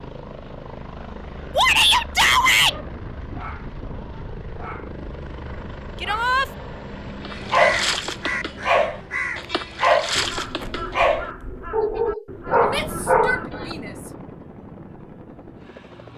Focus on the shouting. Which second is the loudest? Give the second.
2 s.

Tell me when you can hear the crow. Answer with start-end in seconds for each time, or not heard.
7.3-13.5.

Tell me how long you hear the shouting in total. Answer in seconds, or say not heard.
3 s.